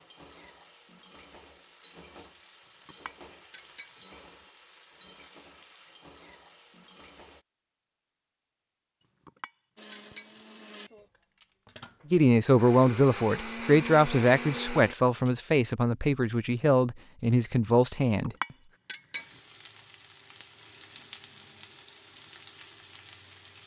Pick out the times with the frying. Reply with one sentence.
The frying can be heard from 0.0 to 7.5 s and from 19.1 to 23.6 s.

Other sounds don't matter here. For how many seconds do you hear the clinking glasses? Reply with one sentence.
The clinking glasses can be heard for 4 seconds in total.